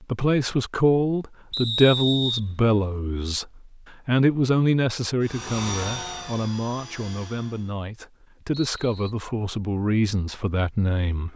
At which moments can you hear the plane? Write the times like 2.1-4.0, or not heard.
5.2-7.8.